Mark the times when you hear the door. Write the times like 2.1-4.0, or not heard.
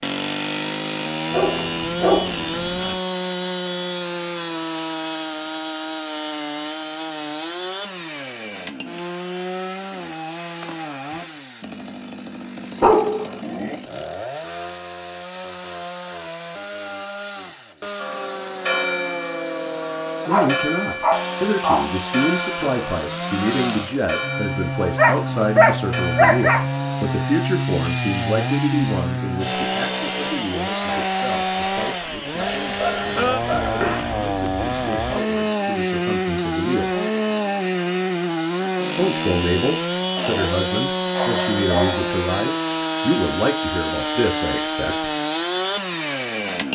not heard.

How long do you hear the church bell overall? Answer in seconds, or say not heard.
10 s.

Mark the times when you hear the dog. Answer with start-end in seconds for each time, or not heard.
1.3-3.0, 12.8-13.8, 20.2-21.9, 24.9-26.6, 32.4-34.1, 40.1-42.1.